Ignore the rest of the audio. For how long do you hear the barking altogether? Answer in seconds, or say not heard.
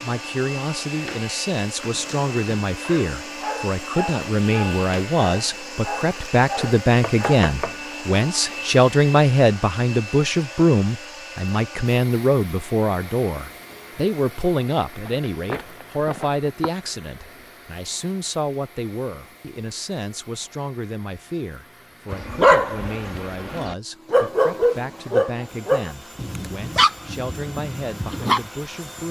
11 s.